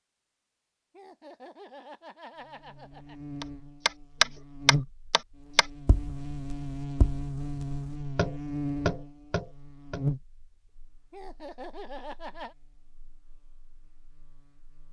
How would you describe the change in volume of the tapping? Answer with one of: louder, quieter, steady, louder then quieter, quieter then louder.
quieter then louder.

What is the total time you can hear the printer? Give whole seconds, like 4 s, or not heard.
not heard.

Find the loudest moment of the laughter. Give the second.
12 s.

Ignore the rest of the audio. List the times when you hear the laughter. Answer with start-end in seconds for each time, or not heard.
0.9-3.1, 11.1-12.6.